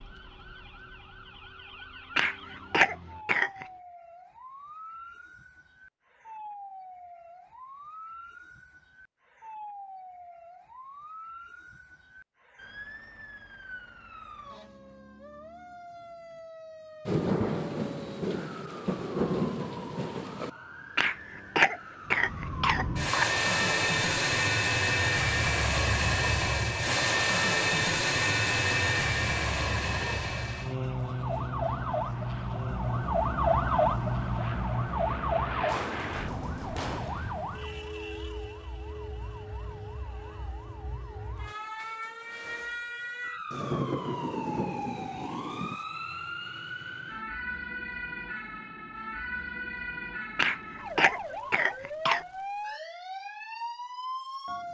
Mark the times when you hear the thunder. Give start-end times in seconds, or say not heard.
17.1-20.5, 43.5-45.8.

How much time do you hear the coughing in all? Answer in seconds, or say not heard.
6 s.